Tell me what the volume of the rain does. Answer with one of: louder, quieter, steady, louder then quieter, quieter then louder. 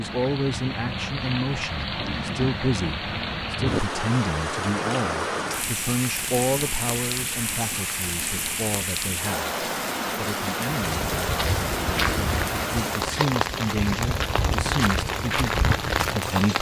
steady.